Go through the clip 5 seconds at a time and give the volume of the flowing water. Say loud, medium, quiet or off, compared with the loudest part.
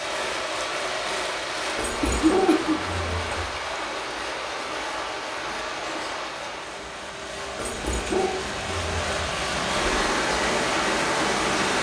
medium, medium, loud.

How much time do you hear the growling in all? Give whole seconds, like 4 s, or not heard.
3 s.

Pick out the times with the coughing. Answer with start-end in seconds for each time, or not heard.
2.0-2.8.